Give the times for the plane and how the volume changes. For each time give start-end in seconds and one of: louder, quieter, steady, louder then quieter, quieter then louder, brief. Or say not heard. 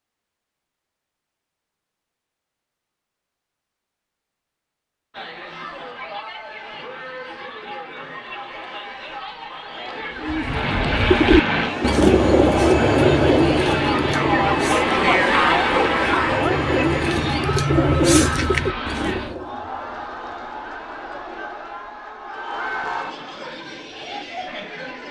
10.4-19.4 quieter.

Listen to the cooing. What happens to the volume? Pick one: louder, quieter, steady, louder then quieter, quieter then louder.
quieter then louder.